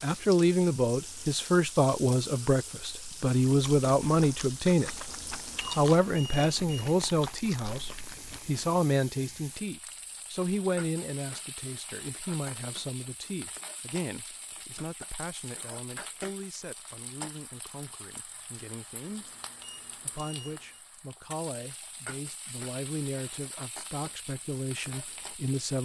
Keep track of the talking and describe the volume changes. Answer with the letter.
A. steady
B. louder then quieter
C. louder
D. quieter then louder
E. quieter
D.